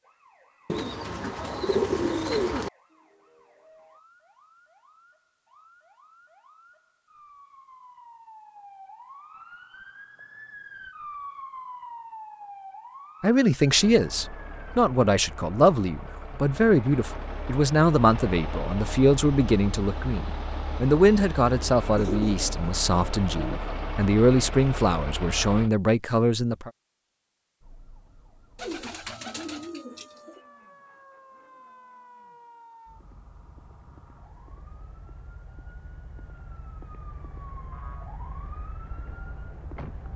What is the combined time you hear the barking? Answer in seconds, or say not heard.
not heard.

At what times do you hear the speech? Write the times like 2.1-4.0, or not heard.
13.2-26.7.